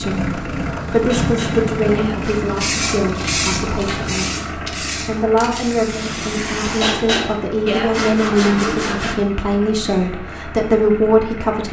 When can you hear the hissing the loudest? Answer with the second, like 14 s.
3 s.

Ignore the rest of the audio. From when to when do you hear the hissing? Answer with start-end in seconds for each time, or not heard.
2.5-7.0.